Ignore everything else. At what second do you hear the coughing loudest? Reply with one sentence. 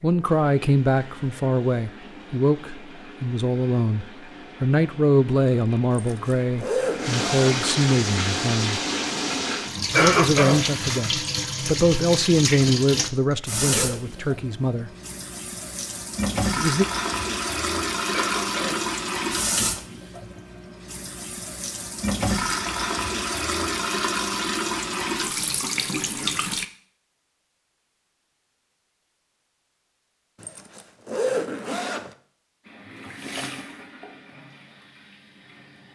The volume of the coughing peaks at 10 seconds.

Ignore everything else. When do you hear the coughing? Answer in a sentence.
The coughing can be heard from 9.9 to 11.0 s and from 18.1 to 18.9 s.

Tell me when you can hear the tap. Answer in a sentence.
The tap can be heard from 0.0 to 26.6 s and from 32.6 to 35.9 s.